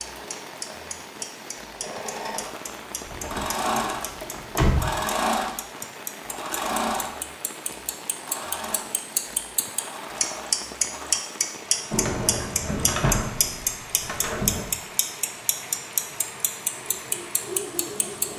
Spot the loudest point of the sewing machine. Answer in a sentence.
The volume of the sewing machine peaks at 5 seconds.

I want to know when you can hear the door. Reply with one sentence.
You can hear the door from 3.0 to 4.9 s and from 11.9 to 14.7 s.